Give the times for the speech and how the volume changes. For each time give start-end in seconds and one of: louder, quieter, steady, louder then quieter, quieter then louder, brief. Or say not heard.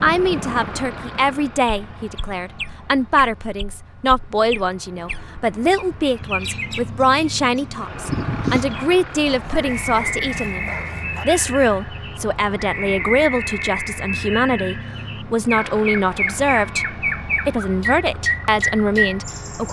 0.0-19.6 steady.